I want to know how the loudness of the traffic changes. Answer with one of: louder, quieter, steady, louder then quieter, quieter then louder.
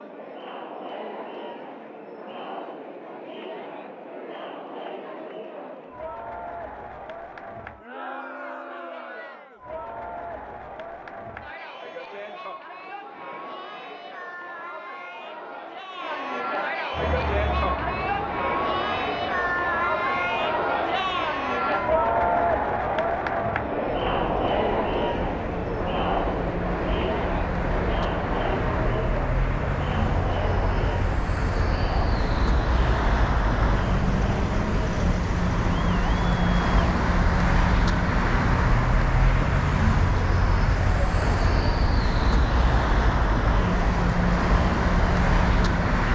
louder.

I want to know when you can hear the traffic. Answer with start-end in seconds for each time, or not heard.
16.9-46.1.